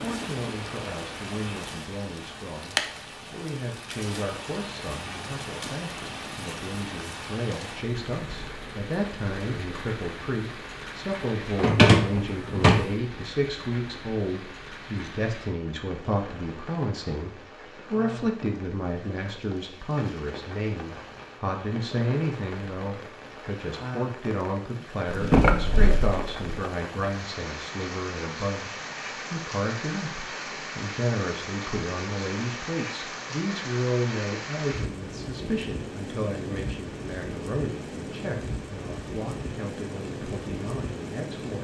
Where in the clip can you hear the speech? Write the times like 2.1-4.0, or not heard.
0.0-41.6.